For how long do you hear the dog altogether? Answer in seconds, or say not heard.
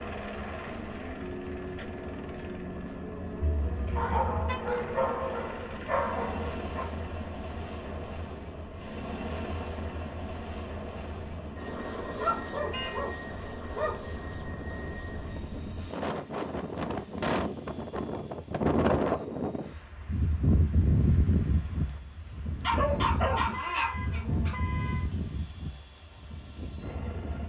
7 s.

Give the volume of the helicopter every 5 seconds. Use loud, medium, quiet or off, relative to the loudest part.
loud, loud, loud, quiet, quiet, medium.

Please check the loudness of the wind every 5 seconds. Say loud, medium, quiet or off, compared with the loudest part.
quiet, quiet, quiet, loud, loud, medium.